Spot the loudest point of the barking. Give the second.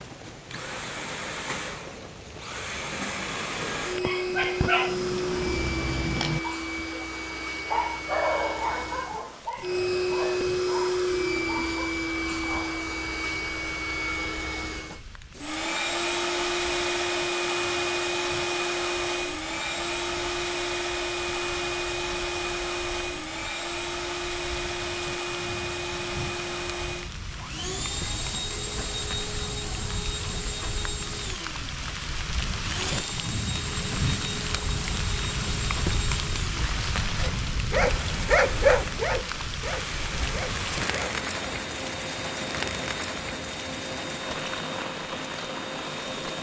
39 s.